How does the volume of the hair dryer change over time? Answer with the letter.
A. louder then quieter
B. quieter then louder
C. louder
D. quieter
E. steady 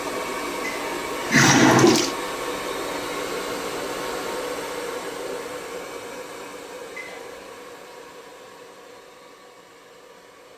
D.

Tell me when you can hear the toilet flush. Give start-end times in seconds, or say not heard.
0.6-2.1, 7.0-7.4.